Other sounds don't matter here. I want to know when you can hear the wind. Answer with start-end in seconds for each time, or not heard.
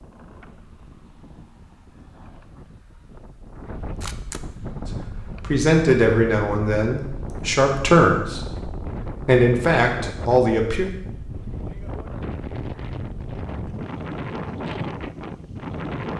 0.0-16.1.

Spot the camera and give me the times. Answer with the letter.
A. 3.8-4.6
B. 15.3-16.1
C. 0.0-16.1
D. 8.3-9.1
A.